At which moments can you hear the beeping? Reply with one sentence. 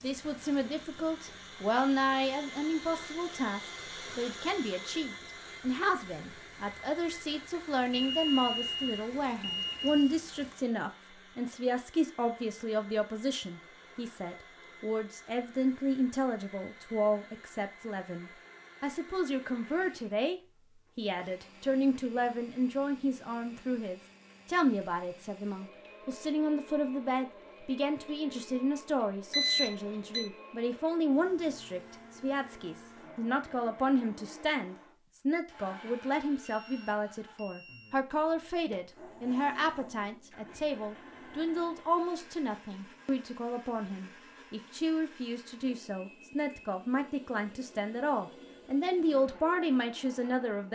You can hear the beeping from 7.9 to 10.1 s, from 29.3 to 30.3 s and from 36.5 to 38.0 s.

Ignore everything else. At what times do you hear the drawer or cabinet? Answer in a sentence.
The drawer or cabinet can't be heard in this clip.